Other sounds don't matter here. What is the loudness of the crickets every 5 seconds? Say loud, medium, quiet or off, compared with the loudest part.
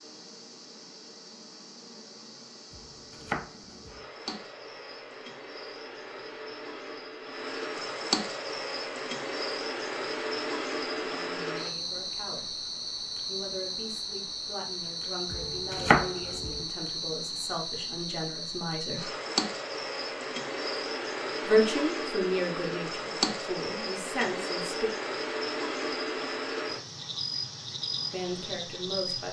quiet, loud, loud, loud, loud, loud.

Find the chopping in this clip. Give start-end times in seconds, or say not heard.
2.7-4.0, 15.3-16.6.